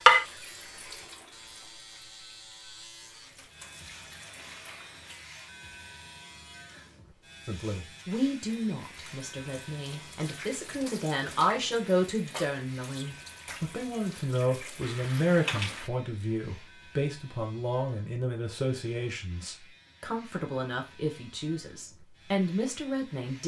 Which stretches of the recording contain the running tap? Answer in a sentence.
The running tap can be heard from 0.0 to 5.2 s and from 8.4 to 15.9 s.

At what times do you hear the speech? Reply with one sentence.
You can hear the speech from 7.5 to 23.4 s.